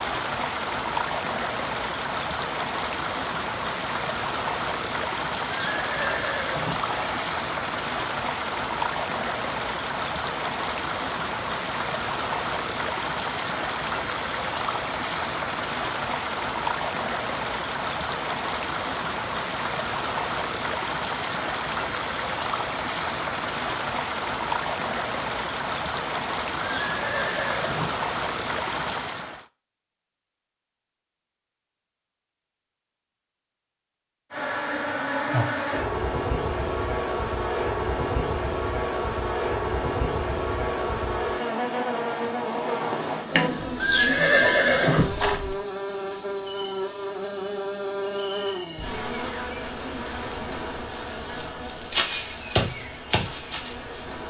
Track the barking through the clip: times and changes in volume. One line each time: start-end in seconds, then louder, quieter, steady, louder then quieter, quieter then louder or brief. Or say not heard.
not heard.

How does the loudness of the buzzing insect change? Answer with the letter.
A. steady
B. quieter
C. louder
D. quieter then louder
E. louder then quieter
A.